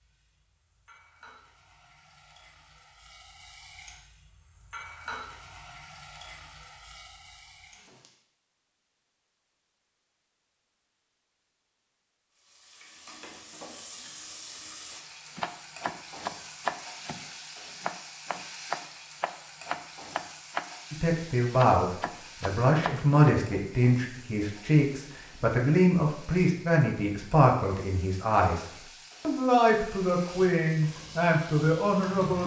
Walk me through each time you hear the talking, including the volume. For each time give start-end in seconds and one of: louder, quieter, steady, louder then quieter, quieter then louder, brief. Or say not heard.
20.9-32.4 steady.